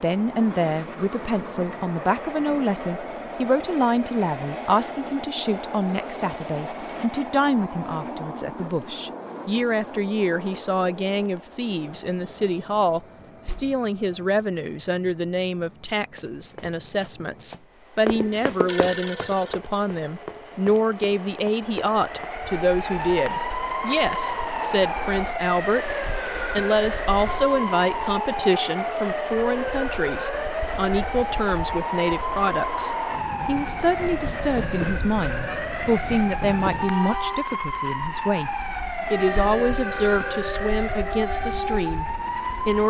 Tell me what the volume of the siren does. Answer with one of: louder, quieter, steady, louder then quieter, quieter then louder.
steady.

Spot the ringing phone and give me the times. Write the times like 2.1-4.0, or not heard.
18.1-19.6.